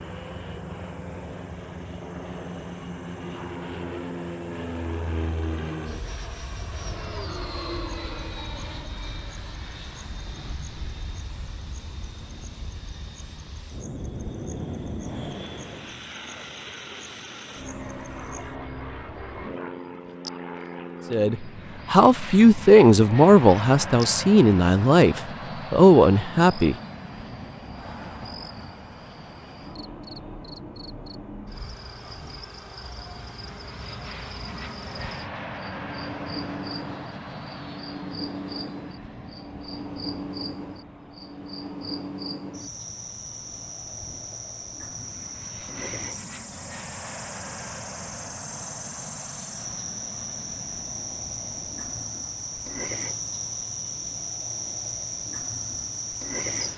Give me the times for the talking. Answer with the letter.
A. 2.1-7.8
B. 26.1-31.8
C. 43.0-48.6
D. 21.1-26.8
D.